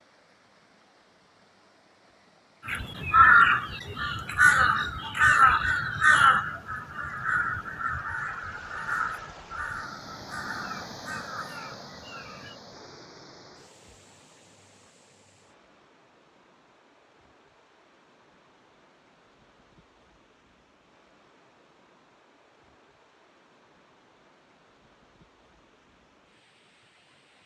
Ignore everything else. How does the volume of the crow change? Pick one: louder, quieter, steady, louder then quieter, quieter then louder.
quieter.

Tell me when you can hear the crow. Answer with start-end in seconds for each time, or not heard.
2.6-12.6.